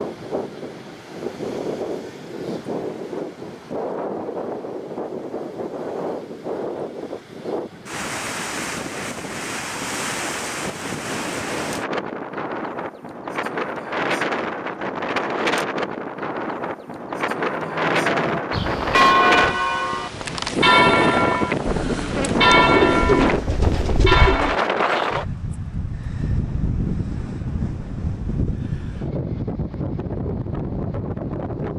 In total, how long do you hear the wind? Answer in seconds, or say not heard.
32 s.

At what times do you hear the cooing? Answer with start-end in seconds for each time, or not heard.
21.9-24.6.